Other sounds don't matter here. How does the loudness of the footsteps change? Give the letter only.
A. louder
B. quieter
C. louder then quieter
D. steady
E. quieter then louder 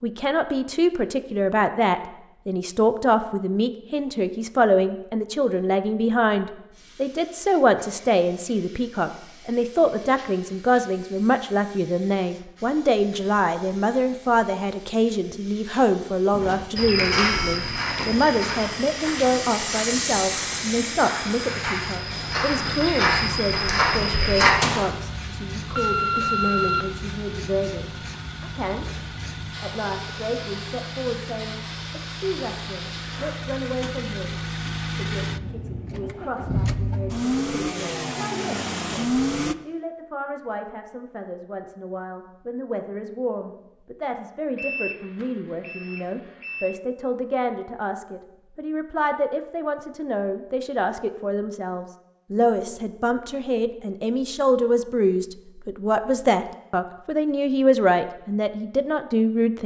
E.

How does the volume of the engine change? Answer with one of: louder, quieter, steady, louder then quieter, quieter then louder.
louder.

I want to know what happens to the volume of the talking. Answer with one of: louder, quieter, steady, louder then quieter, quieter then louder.
quieter then louder.